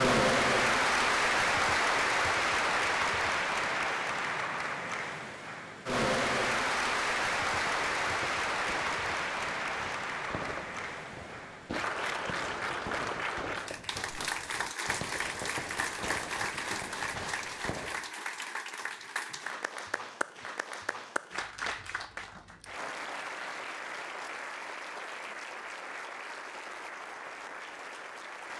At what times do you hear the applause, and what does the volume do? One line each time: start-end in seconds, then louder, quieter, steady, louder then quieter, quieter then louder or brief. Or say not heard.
0.0-28.5 quieter.